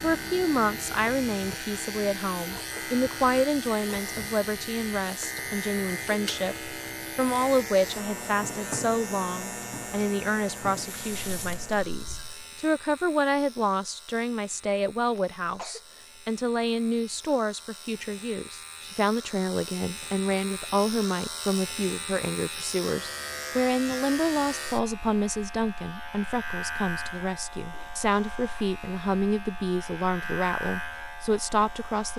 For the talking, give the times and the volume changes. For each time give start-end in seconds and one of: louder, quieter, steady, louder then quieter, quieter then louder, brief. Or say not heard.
0.0-32.1 steady.